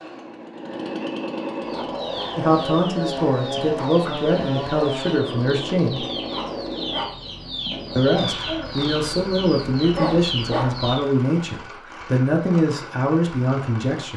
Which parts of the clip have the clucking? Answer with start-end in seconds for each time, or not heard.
1.6-11.1.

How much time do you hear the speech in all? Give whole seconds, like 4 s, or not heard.
10 s.